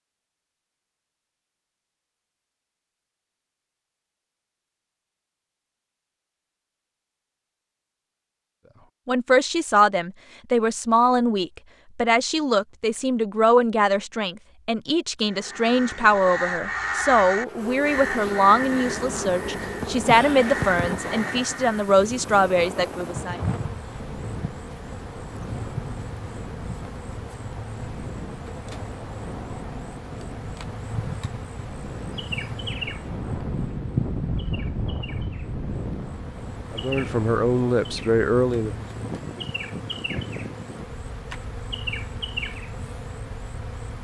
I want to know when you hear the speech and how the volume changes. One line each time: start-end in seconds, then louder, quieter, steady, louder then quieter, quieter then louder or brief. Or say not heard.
9.1-23.4 steady
36.7-38.9 brief.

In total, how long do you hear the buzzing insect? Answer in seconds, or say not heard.
29 s.